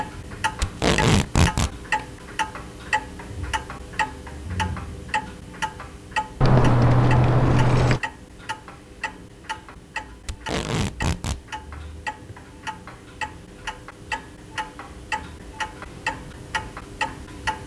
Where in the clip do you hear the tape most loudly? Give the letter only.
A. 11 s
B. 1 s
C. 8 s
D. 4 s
B.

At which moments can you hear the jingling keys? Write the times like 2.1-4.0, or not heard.
6.4-8.0.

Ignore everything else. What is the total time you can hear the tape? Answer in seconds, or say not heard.
2 s.